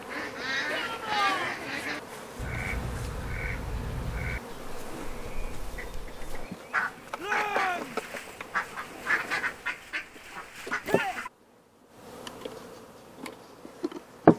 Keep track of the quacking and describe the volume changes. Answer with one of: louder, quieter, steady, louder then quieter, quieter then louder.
quieter then louder.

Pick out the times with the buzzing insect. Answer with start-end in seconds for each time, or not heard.
0.0-14.3.